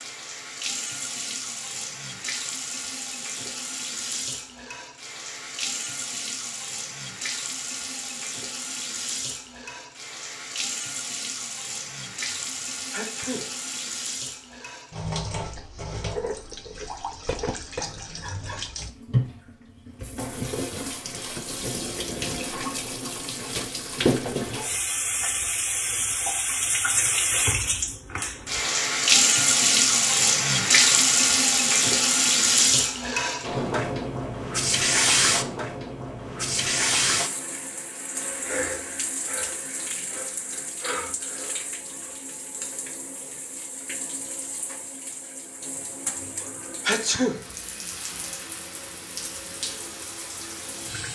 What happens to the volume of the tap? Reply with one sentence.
The loudness of the tap goes up, then down.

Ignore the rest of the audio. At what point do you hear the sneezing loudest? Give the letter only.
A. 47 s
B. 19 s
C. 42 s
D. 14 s
A.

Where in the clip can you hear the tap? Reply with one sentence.
The tap can be heard from 0.0 to 51.0 s.